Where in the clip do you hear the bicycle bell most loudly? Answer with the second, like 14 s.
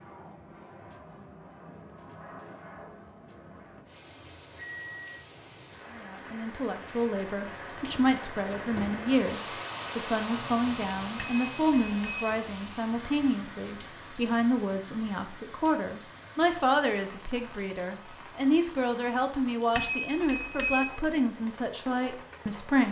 20 s.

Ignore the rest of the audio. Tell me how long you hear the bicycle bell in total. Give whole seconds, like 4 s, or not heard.
3 s.